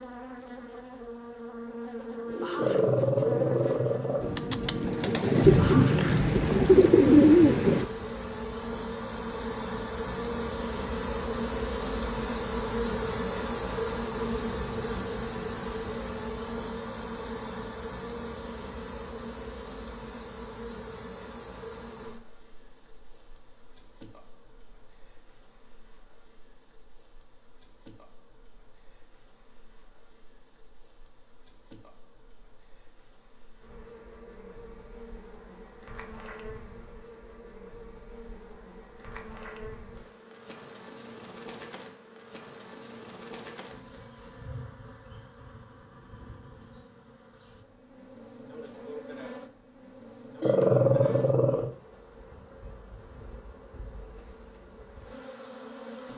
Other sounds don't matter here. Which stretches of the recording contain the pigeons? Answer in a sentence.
You can hear the pigeons from 2.2 to 7.8 s.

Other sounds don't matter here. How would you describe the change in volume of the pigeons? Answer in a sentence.
The volume of the pigeons goes up.